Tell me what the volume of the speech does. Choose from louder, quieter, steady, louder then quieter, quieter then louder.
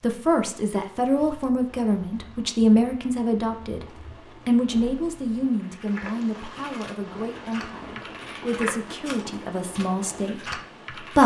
quieter then louder.